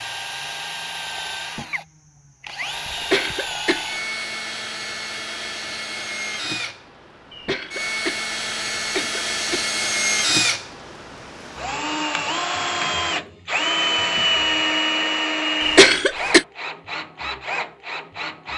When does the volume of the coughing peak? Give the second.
16 s.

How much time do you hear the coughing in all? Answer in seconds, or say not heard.
4 s.